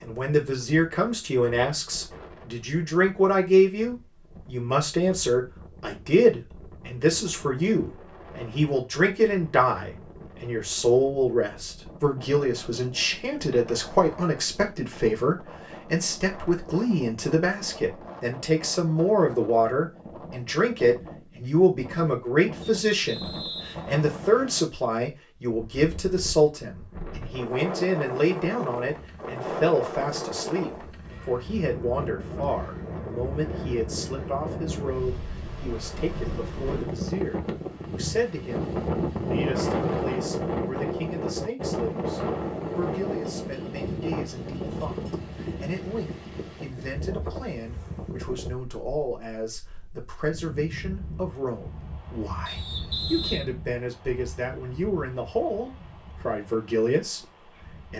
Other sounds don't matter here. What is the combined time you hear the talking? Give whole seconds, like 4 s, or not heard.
58 s.